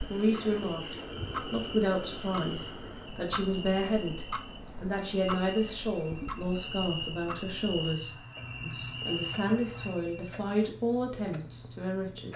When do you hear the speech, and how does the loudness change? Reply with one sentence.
The speech can be heard from 0.1 to 12.3 s, at a steady volume.